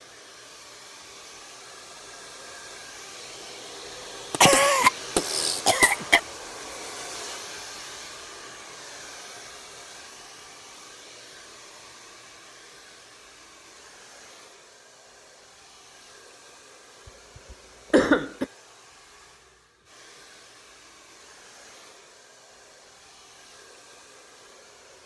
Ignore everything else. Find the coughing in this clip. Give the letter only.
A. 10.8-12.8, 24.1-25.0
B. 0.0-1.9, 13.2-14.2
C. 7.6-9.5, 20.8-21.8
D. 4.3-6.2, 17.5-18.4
D.